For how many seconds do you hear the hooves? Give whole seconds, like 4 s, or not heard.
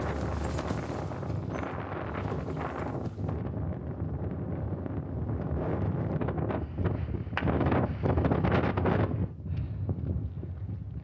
3 s.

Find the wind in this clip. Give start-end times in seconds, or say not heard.
0.0-10.9.